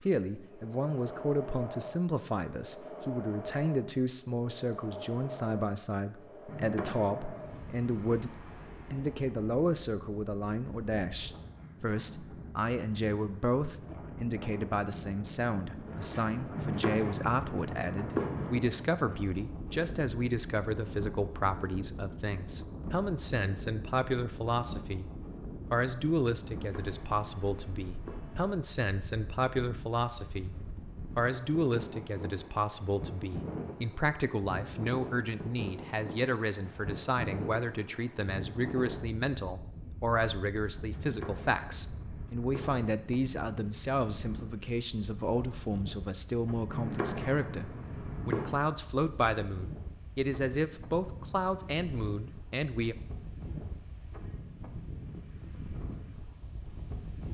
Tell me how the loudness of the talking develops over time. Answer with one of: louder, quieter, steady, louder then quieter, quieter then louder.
steady.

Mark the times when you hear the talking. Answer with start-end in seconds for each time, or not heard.
0.0-53.0.